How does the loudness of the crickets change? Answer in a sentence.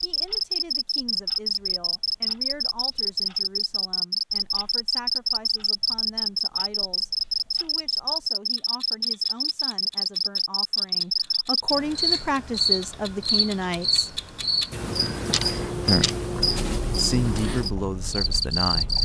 The volume of the crickets stays about the same.